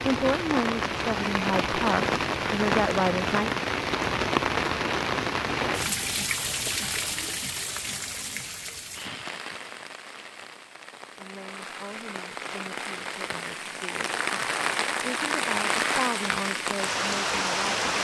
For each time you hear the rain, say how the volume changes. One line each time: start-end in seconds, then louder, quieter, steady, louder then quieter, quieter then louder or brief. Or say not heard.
0.0-17.9 quieter then louder.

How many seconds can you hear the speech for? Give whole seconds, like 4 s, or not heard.
10 s.